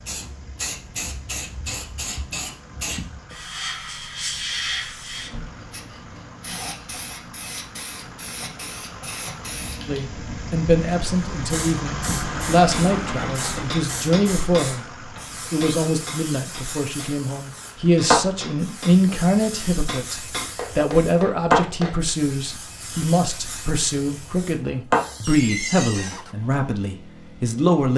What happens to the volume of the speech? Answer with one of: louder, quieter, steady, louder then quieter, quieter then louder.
steady.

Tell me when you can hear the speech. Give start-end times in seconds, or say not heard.
9.8-27.9.